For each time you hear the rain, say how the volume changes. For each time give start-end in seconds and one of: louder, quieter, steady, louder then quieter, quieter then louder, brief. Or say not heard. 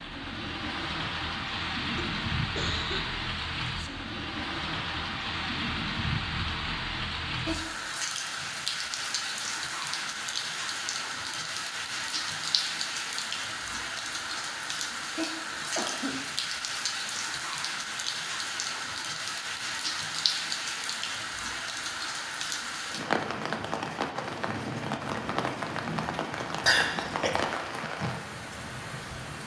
0.0-29.4 steady.